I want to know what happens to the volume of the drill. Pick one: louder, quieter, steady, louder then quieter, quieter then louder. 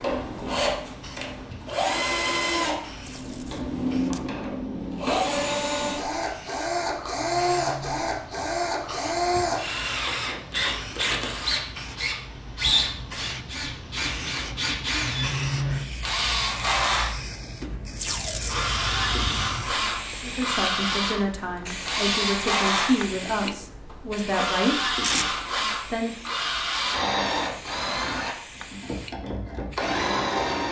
steady.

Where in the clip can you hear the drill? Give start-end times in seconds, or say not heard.
0.0-30.6.